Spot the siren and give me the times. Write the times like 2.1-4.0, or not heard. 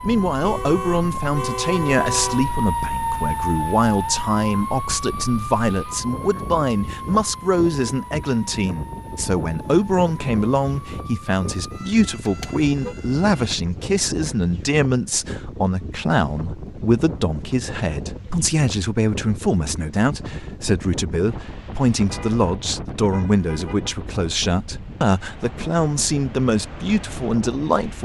0.0-13.3.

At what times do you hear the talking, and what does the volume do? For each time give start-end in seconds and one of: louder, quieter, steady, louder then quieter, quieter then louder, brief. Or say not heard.
0.0-27.9 steady.